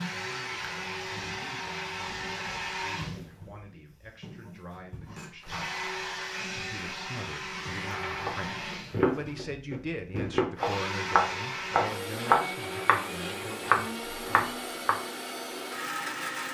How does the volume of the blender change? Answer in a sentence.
The loudness of the blender stays about the same.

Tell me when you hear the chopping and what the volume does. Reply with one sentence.
The chopping can be heard from 7.5 to 13.0 s, getting louder; and briefly from 13.7 to 14.9 s.